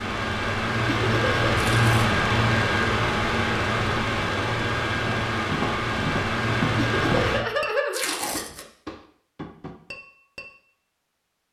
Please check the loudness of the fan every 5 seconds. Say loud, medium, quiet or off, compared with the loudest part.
loud, loud, off.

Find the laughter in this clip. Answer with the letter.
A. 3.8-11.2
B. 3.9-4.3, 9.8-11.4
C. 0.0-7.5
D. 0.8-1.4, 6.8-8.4
D.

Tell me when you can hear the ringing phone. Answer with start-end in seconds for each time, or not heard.
not heard.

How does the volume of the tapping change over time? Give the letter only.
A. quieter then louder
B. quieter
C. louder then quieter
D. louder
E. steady
B.